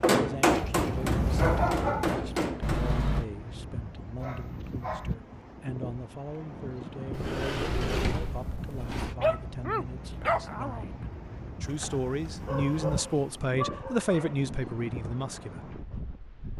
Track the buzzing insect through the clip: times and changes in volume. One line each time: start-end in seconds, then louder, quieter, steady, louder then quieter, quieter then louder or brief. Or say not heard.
not heard.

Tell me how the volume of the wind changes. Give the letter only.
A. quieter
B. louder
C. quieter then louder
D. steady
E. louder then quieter
A.